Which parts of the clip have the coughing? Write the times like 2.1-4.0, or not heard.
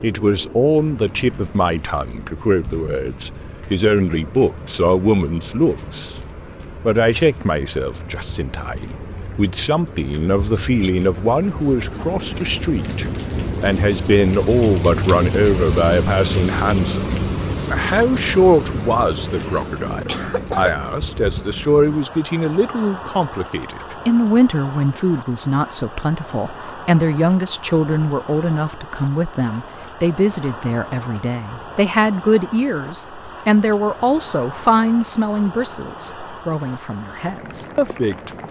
19.2-20.9.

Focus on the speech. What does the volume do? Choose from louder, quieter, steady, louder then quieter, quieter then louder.
steady.